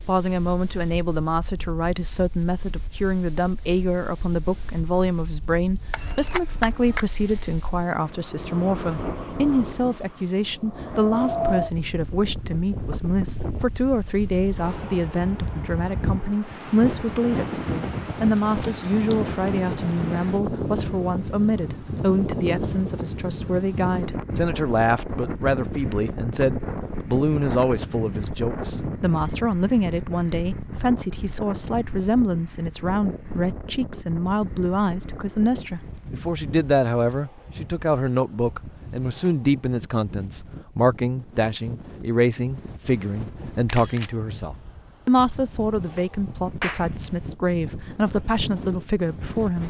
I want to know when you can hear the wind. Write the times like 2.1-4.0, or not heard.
0.0-49.6.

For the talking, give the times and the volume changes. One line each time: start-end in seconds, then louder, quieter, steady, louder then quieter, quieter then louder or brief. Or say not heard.
0.1-49.6 steady.